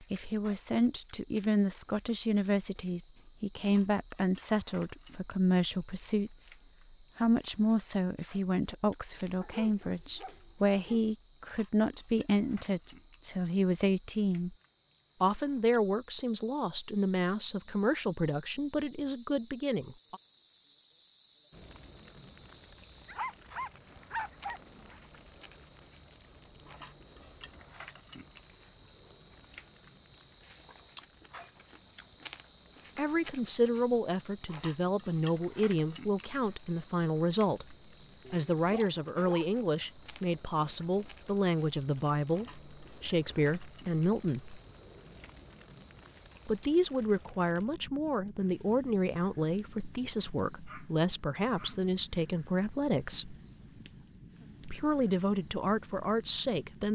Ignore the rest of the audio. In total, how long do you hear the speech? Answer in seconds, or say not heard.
40 s.